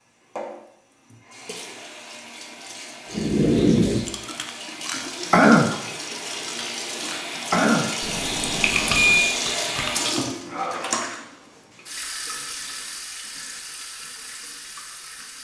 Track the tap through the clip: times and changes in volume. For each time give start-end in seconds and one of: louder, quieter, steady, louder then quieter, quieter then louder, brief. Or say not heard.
0.0-15.4 louder then quieter.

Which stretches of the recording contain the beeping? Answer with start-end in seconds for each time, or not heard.
8.0-9.3.